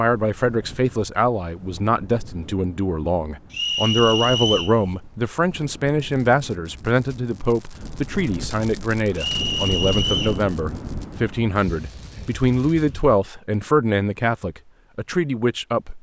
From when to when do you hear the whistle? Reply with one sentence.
You can hear the whistle from 3.5 to 4.8 s and from 9.2 to 10.4 s.